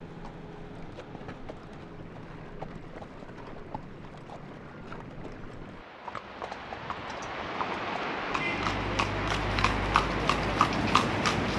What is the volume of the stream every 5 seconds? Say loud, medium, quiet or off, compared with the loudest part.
quiet, loud, loud.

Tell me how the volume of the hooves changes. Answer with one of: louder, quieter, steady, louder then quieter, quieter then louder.
louder.